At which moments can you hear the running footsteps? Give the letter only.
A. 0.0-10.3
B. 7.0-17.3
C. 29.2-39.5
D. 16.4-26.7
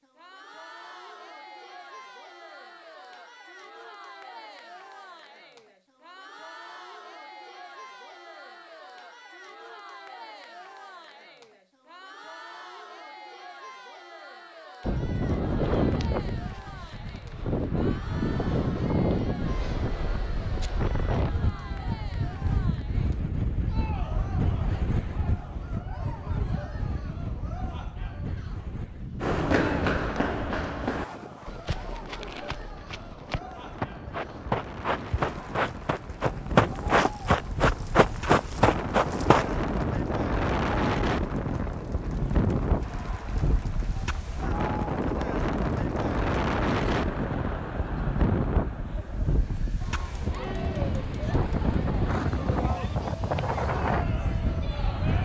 C.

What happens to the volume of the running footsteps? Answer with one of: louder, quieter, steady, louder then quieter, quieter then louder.
quieter then louder.